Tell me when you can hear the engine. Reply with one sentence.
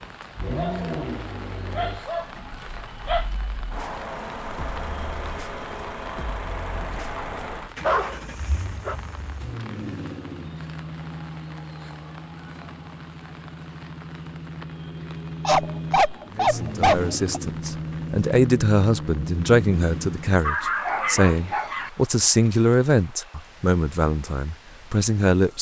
The engine can be heard from 0.2 to 20.4 s.